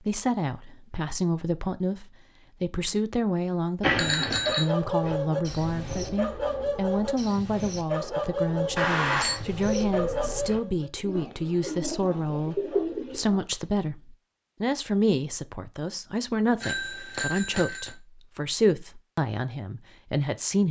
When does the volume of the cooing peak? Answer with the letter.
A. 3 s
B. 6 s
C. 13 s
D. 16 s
C.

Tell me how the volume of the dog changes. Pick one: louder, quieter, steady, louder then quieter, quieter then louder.
quieter.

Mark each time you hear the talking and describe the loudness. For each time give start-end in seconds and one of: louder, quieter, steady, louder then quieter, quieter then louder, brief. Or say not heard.
0.1-20.6 steady.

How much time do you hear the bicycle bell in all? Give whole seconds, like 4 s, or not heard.
3 s.